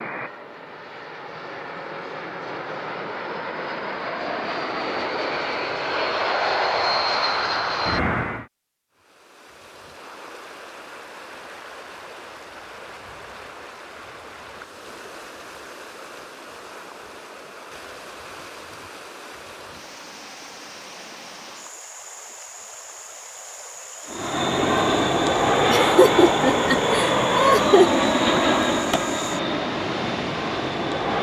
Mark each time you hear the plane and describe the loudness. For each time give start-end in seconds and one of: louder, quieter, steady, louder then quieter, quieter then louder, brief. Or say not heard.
0.0-8.4 louder
24.1-31.1 quieter.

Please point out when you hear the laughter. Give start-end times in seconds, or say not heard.
25.7-27.9.